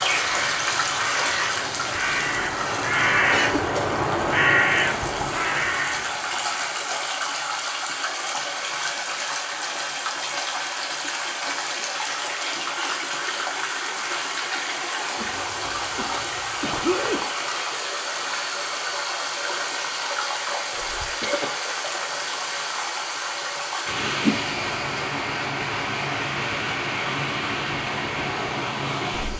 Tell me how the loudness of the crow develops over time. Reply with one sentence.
The loudness of the crow goes up, then down.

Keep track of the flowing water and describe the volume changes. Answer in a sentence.
The volume of the flowing water stays about the same.